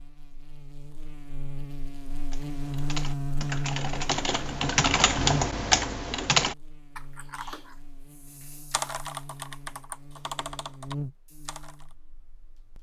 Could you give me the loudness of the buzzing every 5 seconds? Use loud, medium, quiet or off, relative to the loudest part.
loud, loud, medium.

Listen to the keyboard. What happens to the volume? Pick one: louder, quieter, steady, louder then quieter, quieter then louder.
louder then quieter.